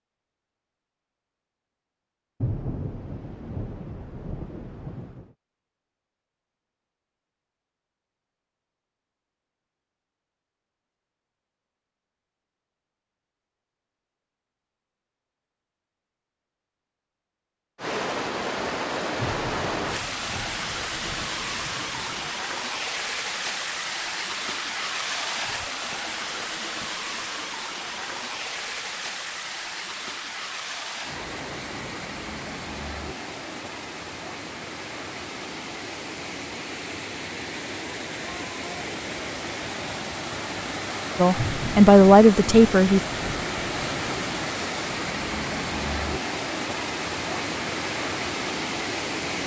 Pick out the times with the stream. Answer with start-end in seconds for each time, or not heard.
17.8-49.4.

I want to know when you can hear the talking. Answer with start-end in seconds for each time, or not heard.
41.1-43.0.